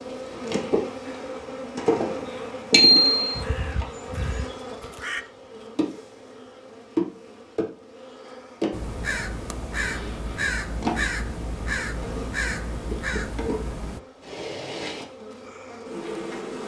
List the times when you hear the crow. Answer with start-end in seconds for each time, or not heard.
3.4-5.2, 8.7-14.0.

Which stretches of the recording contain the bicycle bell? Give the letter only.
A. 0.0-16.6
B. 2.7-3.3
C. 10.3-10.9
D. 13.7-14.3
B.